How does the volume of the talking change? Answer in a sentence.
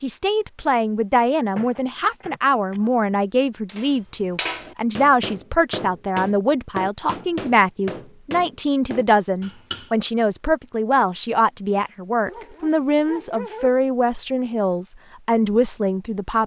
The loudness of the talking stays about the same.